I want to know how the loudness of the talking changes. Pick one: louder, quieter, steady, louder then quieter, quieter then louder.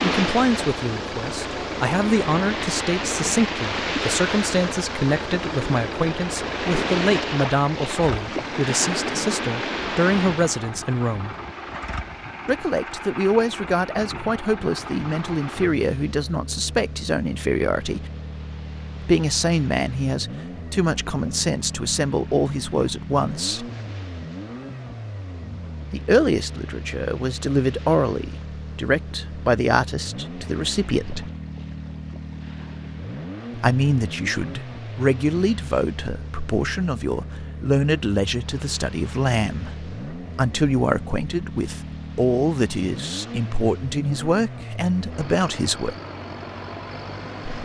steady.